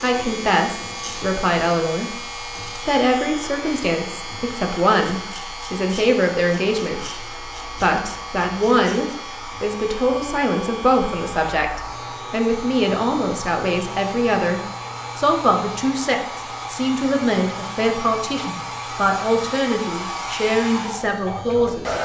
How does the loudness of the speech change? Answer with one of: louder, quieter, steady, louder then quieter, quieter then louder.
steady.